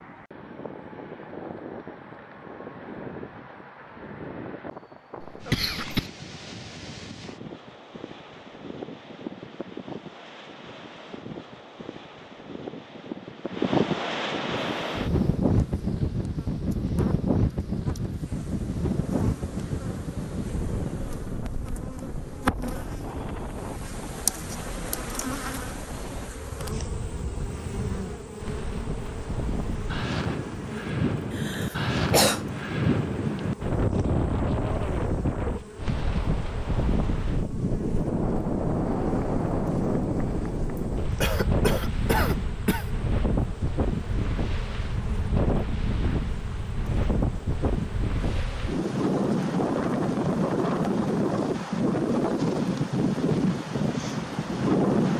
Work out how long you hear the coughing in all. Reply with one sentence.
You can hear the coughing for 4 seconds altogether.